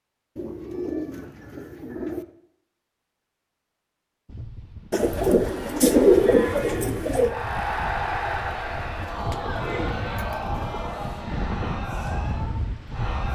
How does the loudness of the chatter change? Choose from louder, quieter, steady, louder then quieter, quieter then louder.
louder then quieter.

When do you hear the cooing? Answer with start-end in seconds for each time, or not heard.
0.3-2.2, 4.9-7.3, 8.9-10.9.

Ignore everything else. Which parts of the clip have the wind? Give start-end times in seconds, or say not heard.
4.2-13.2.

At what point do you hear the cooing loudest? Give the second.
6 s.